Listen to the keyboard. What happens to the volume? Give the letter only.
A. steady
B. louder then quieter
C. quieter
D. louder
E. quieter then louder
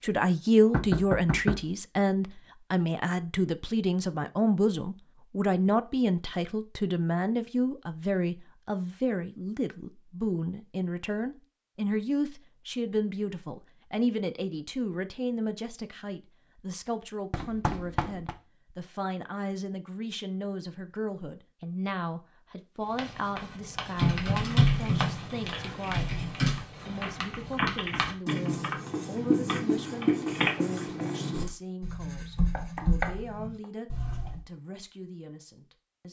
E.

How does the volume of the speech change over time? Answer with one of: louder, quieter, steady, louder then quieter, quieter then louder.
quieter.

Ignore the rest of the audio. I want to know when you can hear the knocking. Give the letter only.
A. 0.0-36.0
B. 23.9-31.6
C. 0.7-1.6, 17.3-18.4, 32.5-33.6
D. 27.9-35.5
C.